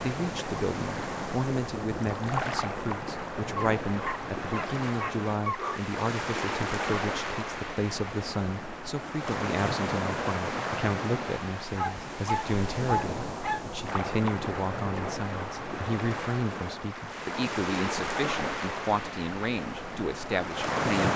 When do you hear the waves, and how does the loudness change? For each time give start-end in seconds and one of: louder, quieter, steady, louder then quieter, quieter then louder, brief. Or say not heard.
0.0-21.1 steady.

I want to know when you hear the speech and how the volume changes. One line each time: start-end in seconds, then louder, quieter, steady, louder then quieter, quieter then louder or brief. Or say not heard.
0.0-21.1 steady.